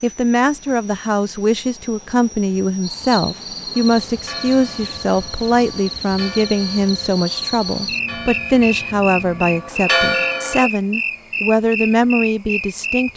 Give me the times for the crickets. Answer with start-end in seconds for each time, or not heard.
2.8-13.1.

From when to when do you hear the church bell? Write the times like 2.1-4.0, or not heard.
3.8-10.7.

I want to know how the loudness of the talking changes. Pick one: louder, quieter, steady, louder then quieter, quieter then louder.
steady.